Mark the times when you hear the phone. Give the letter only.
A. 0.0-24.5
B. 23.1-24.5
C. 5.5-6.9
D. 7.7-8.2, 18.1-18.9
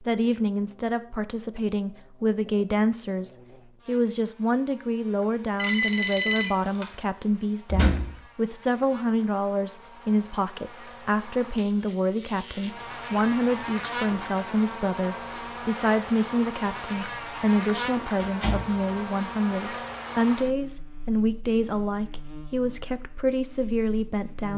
C.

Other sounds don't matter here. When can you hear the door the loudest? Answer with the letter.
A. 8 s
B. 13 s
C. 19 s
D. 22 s
A.